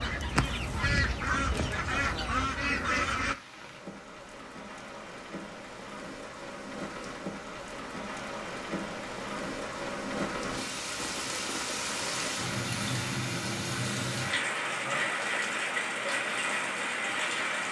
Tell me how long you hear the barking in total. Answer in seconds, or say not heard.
not heard.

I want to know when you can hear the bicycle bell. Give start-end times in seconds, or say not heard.
not heard.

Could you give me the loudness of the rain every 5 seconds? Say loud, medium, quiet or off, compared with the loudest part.
quiet, medium, loud, loud.